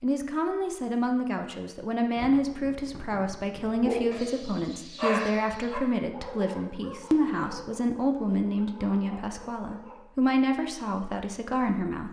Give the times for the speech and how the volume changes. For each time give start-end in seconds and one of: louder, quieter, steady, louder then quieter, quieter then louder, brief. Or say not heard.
0.0-12.0 steady.